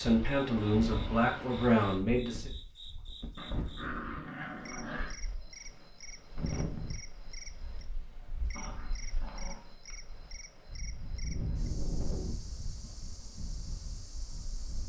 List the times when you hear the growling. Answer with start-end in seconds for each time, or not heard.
3.4-5.2, 8.5-9.7.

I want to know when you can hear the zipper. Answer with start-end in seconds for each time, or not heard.
not heard.